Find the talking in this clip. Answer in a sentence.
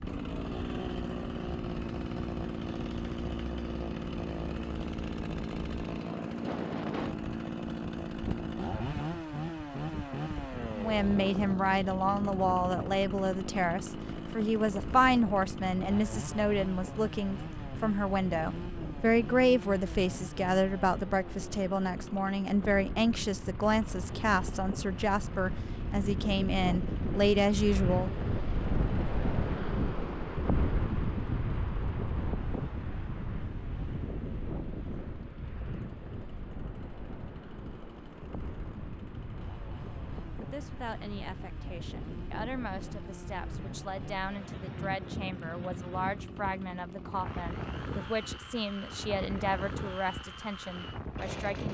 You can hear the talking from 10.8 to 28.1 s and from 40.4 to 51.6 s.